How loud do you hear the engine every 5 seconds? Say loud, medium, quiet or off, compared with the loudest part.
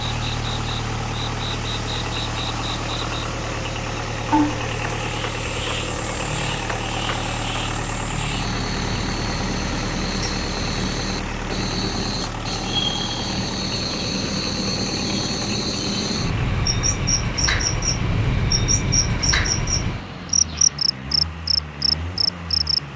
loud, loud, loud, medium, medium.